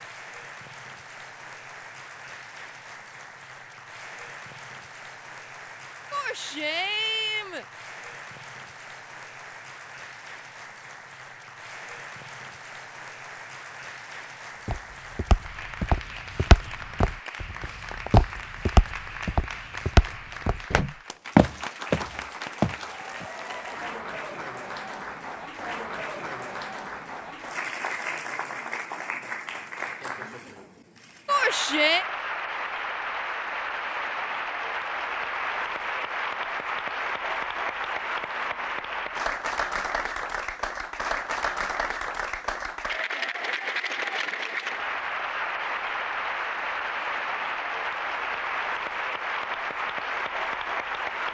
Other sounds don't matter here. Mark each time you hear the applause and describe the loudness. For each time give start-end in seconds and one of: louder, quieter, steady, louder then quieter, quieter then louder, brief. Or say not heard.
0.0-51.2 louder.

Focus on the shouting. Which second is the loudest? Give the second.
32 s.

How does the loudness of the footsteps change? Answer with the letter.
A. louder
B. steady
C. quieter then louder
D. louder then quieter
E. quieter
C.